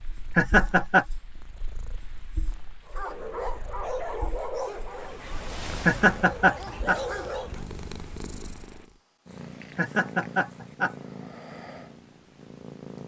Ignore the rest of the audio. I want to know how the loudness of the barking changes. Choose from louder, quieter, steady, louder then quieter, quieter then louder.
quieter then louder.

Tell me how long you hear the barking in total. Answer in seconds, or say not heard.
5 s.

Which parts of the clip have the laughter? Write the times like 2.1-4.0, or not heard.
0.3-1.1, 5.8-7.0, 9.8-10.9.